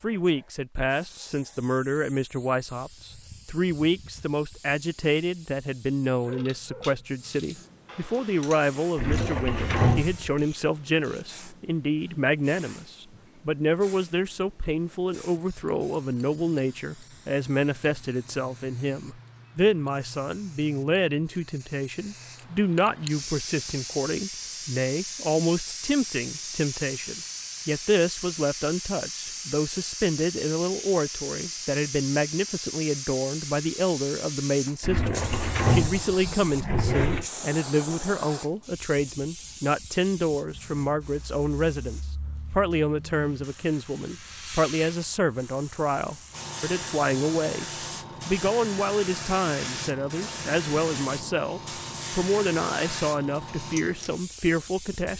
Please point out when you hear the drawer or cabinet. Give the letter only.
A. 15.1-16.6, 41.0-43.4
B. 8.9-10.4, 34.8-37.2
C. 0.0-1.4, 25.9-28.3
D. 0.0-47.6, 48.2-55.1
B.